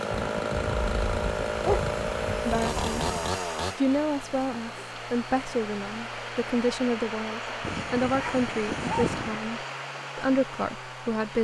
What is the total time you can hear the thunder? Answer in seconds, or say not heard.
3 s.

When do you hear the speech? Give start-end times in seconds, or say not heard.
2.5-3.1, 3.8-11.3.